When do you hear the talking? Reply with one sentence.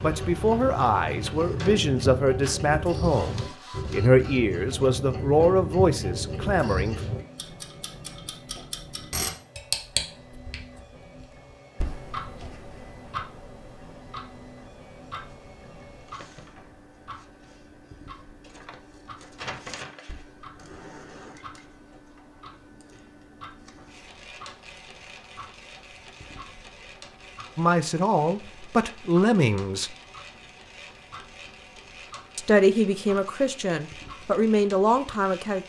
The talking can be heard from 0.0 to 7.0 s, from 27.6 to 29.9 s and from 32.4 to 35.6 s.